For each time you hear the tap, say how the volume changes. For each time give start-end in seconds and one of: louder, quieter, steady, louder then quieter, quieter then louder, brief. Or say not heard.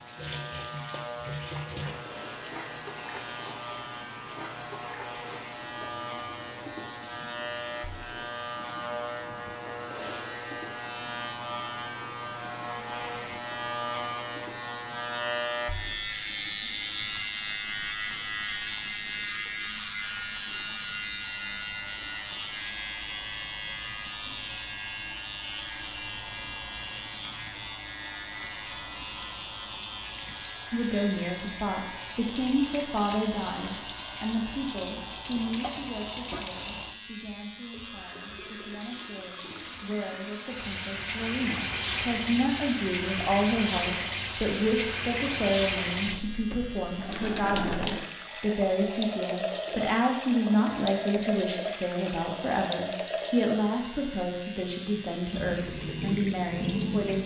0.0-57.2 quieter then louder.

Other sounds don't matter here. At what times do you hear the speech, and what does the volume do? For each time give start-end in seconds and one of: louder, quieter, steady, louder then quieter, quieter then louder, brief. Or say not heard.
30.7-57.2 quieter then louder.